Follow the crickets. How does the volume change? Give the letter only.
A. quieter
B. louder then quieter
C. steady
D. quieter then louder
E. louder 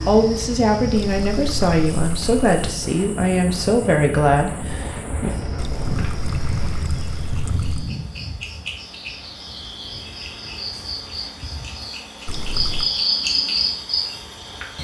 D.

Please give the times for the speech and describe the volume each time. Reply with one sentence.
The speech can be heard from 0.0 to 5.3 s, at a steady volume.